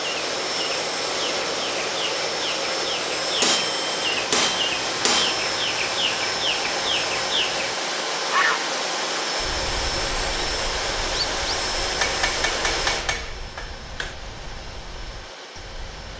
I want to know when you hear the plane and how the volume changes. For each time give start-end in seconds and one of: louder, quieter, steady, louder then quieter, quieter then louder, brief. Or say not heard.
0.0-16.1 quieter.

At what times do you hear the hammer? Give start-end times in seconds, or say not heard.
3.4-5.5, 11.9-14.2.